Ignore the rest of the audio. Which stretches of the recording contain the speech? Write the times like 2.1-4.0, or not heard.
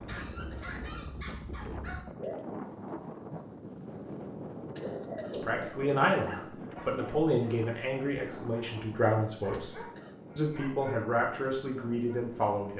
5.3-9.7, 10.3-12.7.